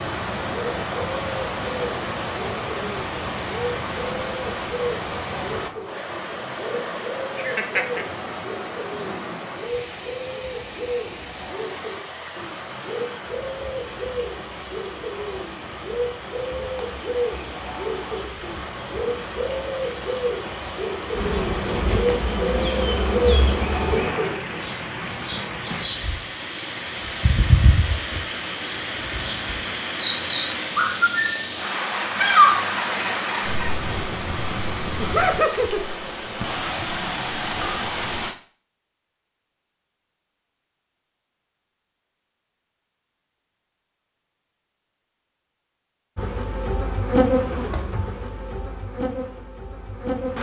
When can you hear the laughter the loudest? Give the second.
35 s.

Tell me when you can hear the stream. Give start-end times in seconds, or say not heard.
0.0-38.4.